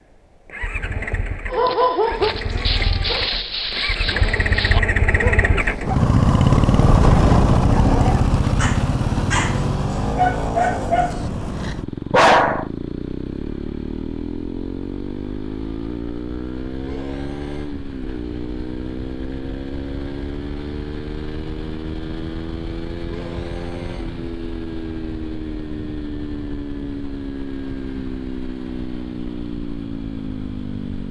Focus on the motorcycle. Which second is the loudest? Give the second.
7 s.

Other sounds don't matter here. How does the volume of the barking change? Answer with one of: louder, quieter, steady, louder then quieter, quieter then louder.
quieter then louder.